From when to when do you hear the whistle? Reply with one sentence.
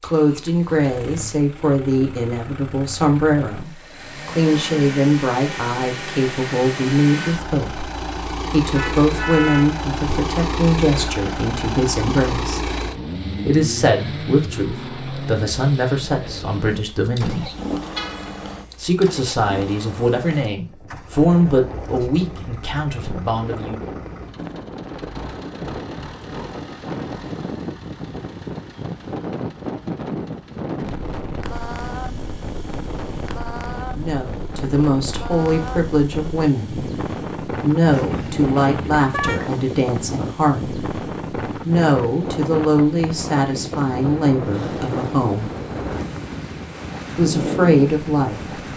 The whistle can't be heard in this clip.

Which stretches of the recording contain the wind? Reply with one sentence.
You can hear the wind from 20.6 to 48.7 s.